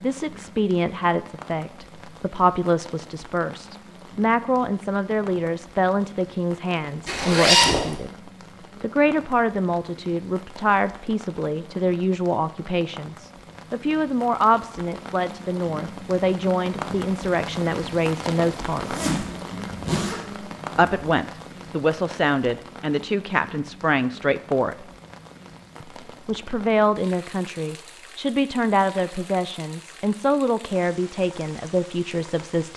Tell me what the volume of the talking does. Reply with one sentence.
The loudness of the talking stays about the same.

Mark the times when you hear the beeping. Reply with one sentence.
The beeping can't be heard in this clip.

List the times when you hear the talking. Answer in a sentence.
The talking can be heard from 0.0 to 19.0 s, from 20.8 to 24.9 s and from 25.8 to 32.7 s.